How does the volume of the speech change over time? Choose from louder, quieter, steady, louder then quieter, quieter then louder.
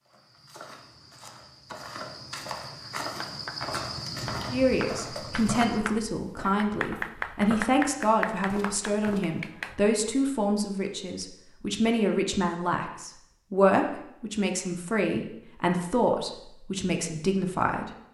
steady.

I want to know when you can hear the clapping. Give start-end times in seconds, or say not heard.
2.8-9.8.